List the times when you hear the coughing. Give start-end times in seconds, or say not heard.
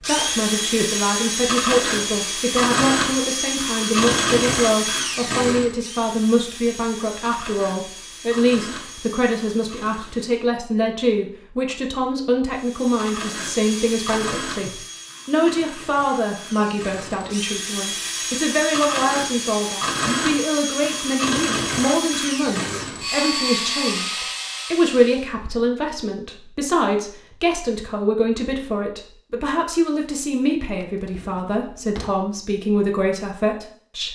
not heard.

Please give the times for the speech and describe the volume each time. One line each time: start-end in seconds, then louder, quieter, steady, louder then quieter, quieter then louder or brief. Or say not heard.
0.0-34.1 steady.